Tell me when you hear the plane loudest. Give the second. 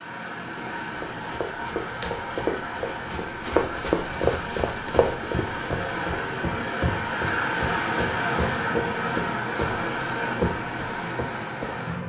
8 s.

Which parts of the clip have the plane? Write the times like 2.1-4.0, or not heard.
0.0-12.0.